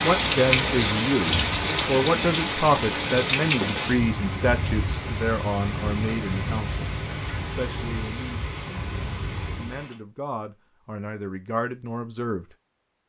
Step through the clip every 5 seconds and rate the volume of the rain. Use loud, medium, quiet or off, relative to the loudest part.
loud, medium, off.